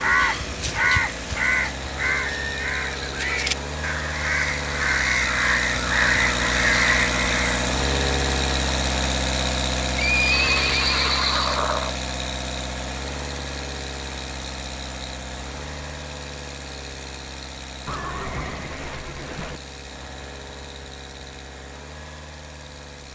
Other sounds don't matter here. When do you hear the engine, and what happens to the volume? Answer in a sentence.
You can hear the engine from 0.0 to 23.1 s, getting louder then quieter.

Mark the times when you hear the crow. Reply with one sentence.
You can hear the crow from 0.0 to 7.7 s.